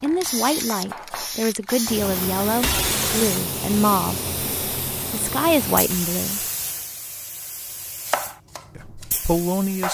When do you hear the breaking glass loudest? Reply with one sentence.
The loudest moment of the breaking glass is at 3 seconds.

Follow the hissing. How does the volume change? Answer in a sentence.
The loudness of the hissing goes down.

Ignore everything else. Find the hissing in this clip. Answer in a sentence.
The hissing can be heard from 0.0 to 9.9 s.